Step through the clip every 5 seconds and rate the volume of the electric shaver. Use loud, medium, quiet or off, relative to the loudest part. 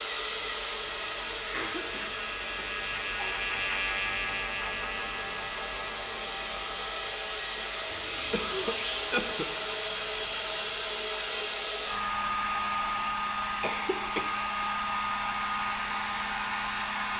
loud, medium, medium, off.